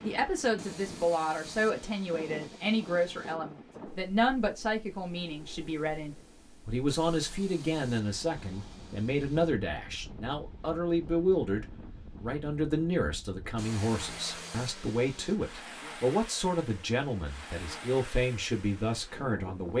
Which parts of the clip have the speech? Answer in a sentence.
The speech can be heard from 0.0 to 19.7 s.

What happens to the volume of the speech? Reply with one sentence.
The loudness of the speech stays about the same.